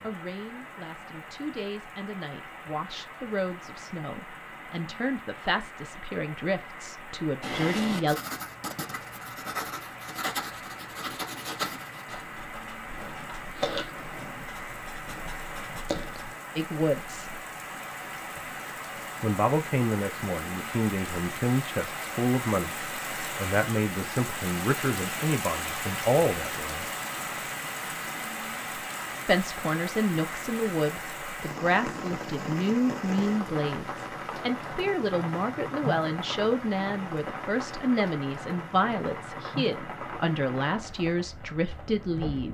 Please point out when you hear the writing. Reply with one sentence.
You can hear the writing from 7.4 to 16.4 s.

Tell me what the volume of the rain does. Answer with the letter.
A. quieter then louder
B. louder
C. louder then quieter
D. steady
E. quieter
B.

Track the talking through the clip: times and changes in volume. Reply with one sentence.
You can hear the talking from 0.0 to 8.2 s, getting louder; briefly from 16.6 to 17.4 s; from 19.2 to 26.9 s, at a steady volume; and from 29.2 to 42.4 s, at a steady volume.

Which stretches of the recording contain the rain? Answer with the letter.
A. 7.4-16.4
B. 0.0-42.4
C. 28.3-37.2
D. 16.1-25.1
B.